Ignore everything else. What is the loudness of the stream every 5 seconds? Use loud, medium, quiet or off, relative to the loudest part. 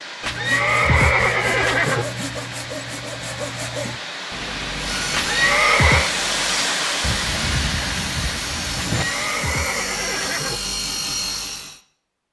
medium, loud, off.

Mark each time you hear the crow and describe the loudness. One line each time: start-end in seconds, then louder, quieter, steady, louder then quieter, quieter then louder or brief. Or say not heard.
not heard.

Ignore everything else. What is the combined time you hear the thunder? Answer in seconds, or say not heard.
2 s.